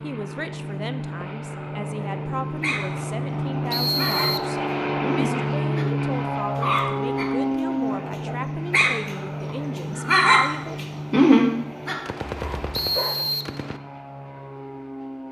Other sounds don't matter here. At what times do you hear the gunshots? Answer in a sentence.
The gunshots can be heard from 12.1 to 13.8 s.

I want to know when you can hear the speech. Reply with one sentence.
The speech can be heard from 0.0 to 10.8 s.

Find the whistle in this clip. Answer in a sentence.
You can hear the whistle from 3.7 to 4.5 s and from 12.7 to 13.5 s.